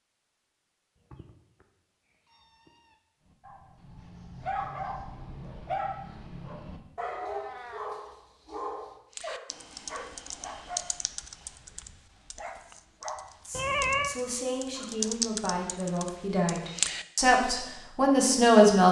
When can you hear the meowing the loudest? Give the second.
14 s.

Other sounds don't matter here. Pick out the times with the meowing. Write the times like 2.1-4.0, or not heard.
1.0-3.0, 7.2-8.0, 13.5-14.2.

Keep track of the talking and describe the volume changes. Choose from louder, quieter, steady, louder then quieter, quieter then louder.
louder.